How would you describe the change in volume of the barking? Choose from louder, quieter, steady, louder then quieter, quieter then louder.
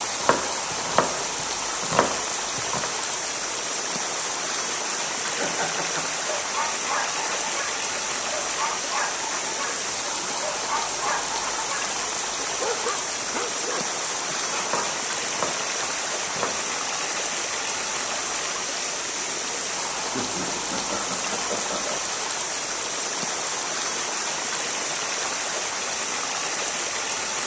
steady.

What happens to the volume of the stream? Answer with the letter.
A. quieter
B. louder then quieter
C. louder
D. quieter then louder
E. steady
E.